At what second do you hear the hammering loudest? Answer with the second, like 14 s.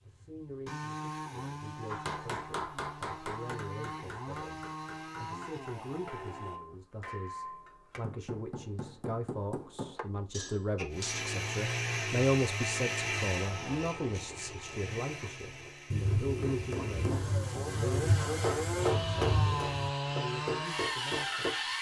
19 s.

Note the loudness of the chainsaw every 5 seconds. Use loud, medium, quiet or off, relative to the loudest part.
medium, medium, loud, loud, loud.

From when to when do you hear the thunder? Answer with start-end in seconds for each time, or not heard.
15.9-19.9.